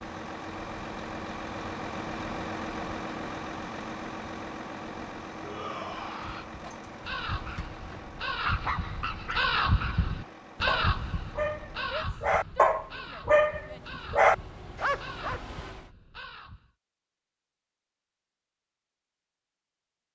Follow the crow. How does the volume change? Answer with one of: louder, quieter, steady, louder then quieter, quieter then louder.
louder then quieter.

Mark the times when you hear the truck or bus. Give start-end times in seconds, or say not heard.
0.0-15.9.